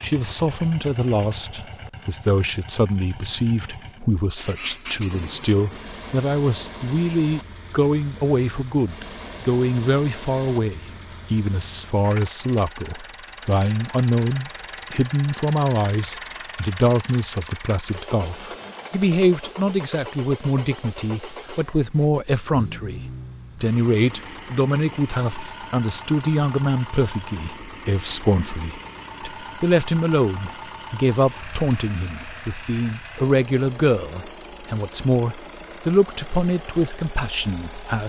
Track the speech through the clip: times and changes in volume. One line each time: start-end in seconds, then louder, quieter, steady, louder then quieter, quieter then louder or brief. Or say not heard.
0.0-38.0 steady.